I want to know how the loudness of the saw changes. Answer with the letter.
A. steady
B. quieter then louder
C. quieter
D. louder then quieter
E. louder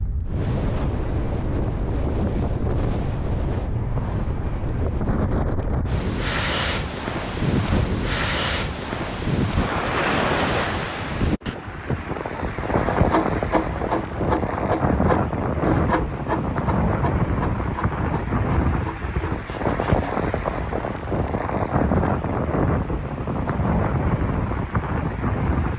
C.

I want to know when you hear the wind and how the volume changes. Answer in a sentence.
You can hear the wind from 0.0 to 25.7 s, at a steady volume.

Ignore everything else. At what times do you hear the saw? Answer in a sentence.
You can hear the saw from 12.8 to 20.1 s.